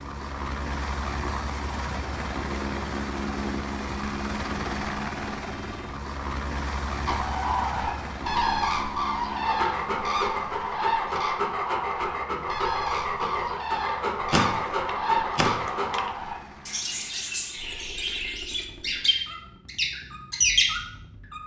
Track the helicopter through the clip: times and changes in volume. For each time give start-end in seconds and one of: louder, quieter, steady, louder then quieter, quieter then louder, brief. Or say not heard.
0.0-21.4 quieter.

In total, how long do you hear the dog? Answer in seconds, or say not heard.
7 s.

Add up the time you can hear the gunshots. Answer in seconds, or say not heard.
2 s.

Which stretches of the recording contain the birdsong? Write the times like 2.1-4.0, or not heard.
7.0-21.4.